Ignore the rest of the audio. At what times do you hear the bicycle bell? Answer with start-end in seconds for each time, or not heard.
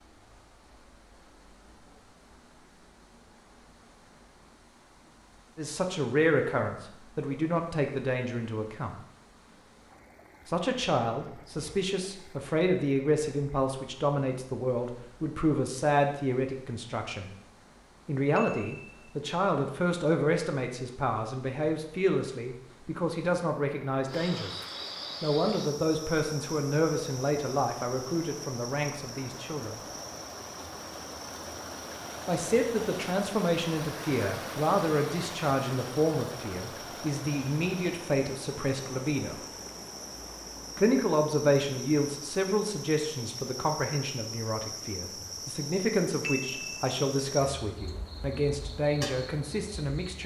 18.4-19.1, 46.2-46.9.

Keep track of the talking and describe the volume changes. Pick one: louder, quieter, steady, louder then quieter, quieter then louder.
steady.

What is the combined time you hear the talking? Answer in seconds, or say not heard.
38 s.